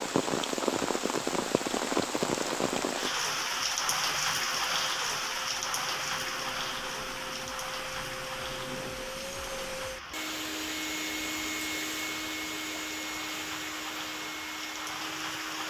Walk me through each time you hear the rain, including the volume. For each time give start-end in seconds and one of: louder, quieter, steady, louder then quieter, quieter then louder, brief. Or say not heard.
0.0-15.6 quieter.